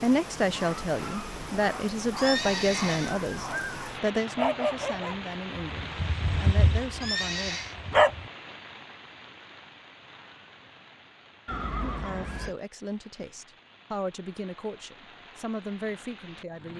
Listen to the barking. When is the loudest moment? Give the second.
8 s.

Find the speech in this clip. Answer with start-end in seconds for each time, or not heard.
0.0-7.6, 11.8-16.7.